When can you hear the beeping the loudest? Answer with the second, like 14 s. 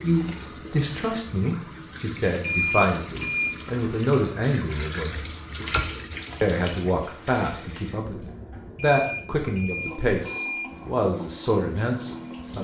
3 s.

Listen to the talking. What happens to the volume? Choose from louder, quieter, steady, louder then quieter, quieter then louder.
steady.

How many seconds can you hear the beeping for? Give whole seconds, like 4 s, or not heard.
3 s.